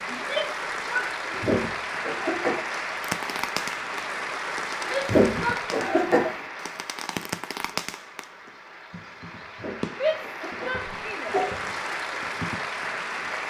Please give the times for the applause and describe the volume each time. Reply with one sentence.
You can hear the applause from 0.0 to 13.4 s, getting quieter then louder.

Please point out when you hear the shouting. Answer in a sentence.
The shouting can be heard from 0.1 to 1.6 s, from 4.8 to 6.2 s and from 9.9 to 11.3 s.